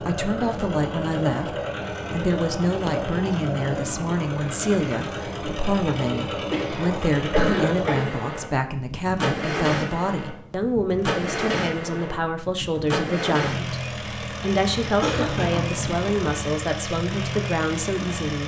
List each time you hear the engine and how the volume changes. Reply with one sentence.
You can hear the engine from 0.0 to 18.4 s, at a steady volume.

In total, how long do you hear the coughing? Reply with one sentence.
The coughing can be heard for 4 seconds in total.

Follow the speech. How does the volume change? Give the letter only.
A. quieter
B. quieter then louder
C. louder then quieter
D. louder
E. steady
E.